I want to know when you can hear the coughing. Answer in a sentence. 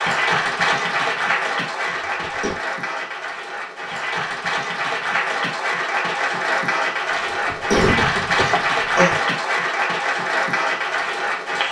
The coughing can be heard from 2.0 to 2.5 s and from 7.1 to 9.2 s.